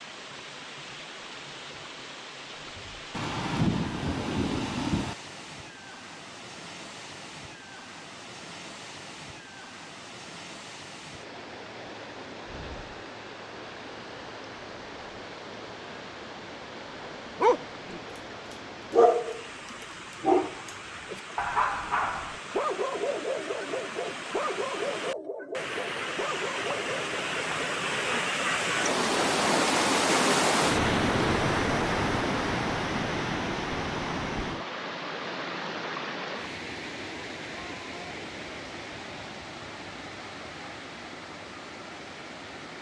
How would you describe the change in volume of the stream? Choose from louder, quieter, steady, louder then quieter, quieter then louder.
louder then quieter.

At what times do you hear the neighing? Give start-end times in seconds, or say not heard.
not heard.